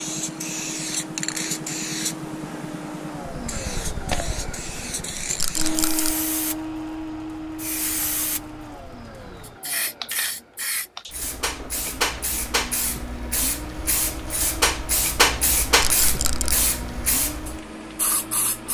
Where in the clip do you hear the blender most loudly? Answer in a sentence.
The volume of the blender peaks at 6 seconds.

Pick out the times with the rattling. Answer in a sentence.
You can hear the rattling from 5.3 to 6.2 s and from 15.8 to 16.6 s.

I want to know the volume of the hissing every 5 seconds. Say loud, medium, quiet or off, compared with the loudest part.
medium, medium, loud, loud.